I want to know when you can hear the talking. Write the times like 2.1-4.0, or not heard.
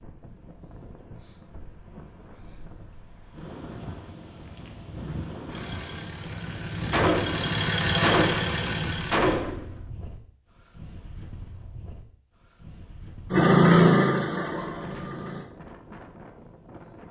not heard.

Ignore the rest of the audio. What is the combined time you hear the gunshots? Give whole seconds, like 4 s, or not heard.
3 s.